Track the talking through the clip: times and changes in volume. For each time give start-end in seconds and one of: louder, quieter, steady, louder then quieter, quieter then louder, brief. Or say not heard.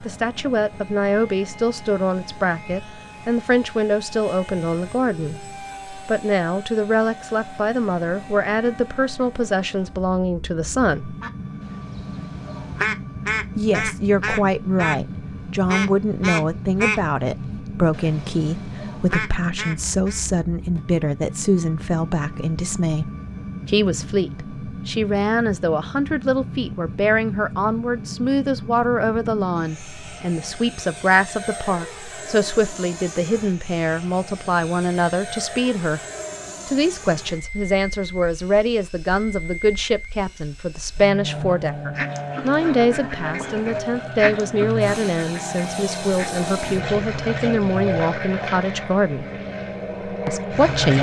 0.0-11.2 steady
13.6-36.0 steady
36.6-49.2 steady
50.2-50.9 brief.